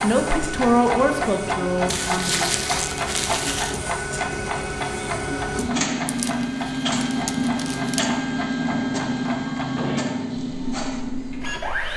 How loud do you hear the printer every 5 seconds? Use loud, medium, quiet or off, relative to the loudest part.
medium, loud, loud.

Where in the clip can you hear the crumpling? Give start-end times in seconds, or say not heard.
1.9-3.8, 6.0-8.0.